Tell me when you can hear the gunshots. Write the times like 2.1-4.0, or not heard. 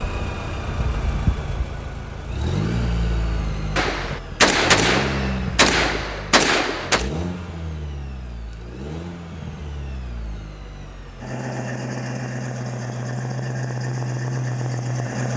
3.8-7.1.